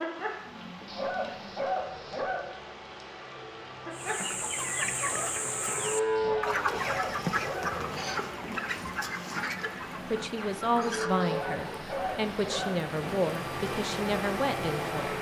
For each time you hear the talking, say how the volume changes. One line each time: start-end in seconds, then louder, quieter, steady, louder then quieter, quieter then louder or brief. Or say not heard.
10.1-15.1 quieter then louder.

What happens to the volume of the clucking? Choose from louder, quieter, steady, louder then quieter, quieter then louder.
quieter.